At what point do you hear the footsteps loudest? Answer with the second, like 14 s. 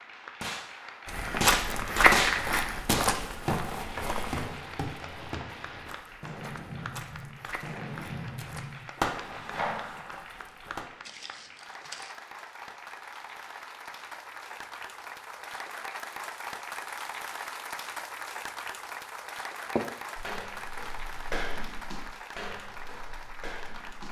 2 s.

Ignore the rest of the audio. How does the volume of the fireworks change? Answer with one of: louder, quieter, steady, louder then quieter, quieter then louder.
quieter then louder.